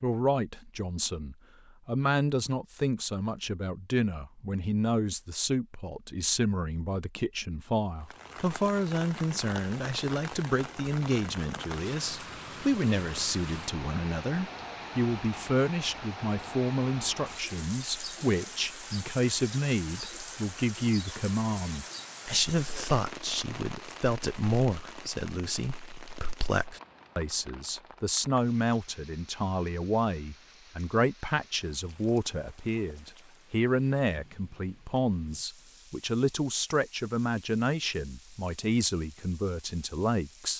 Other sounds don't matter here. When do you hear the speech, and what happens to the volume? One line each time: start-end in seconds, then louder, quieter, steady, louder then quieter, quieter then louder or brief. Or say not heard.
0.0-40.5 steady.